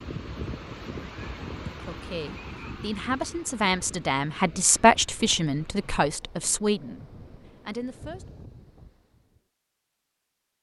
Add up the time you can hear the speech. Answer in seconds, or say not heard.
6 s.